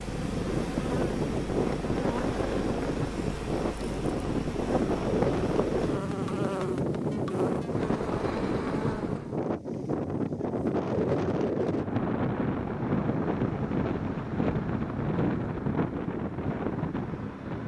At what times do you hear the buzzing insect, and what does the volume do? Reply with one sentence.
You can hear the buzzing insect from 0.0 to 9.3 s, at a steady volume.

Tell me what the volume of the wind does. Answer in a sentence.
The loudness of the wind stays about the same.